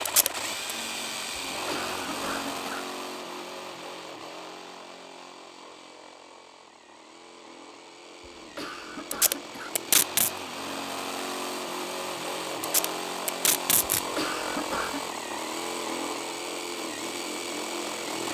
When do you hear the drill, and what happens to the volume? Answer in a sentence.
You can hear the drill from 0.0 to 18.2 s, getting quieter then louder.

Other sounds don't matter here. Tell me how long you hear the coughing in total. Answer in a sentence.
The coughing can be heard for 4 seconds in total.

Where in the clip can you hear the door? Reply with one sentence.
The door can't be heard in this clip.